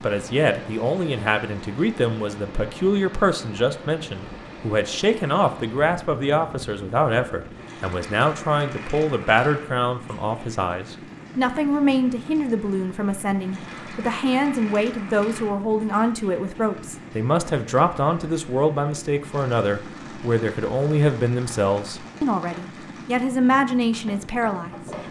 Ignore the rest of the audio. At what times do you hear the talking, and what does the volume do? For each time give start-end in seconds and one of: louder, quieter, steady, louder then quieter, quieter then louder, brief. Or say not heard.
0.0-24.8 steady.